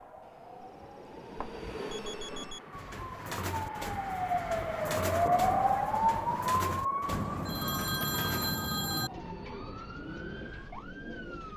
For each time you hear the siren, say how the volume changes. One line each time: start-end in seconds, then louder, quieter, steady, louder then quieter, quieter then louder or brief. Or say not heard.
0.0-11.5 louder then quieter.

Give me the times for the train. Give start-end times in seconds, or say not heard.
0.0-2.8.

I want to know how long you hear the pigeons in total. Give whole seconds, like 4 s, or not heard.
9 s.